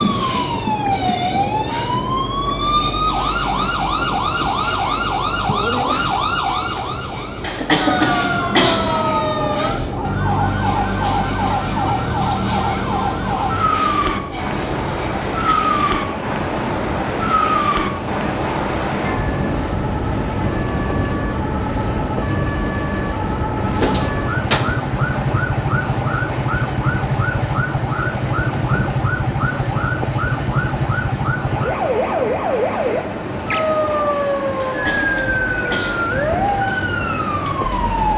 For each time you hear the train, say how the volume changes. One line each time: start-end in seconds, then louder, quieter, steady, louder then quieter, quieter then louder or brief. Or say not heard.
0.0-38.1 steady.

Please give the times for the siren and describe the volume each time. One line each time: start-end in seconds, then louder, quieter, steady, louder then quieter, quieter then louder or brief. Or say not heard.
0.0-38.1 steady.